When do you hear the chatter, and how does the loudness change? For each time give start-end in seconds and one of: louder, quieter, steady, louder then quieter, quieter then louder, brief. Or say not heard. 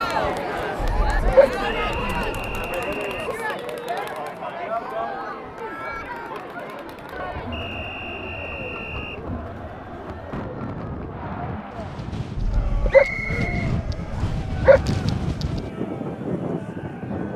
0.0-17.3 quieter.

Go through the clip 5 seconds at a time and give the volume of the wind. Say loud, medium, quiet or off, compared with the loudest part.
off, quiet, loud, loud.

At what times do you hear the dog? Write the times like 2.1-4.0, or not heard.
0.8-2.7, 12.3-14.8.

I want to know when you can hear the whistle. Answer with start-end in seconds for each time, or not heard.
1.6-3.4, 7.5-9.2, 12.9-14.4.